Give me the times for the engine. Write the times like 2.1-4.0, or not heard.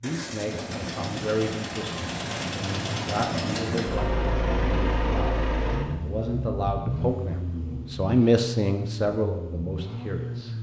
0.0-10.5.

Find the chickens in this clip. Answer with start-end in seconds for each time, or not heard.
not heard.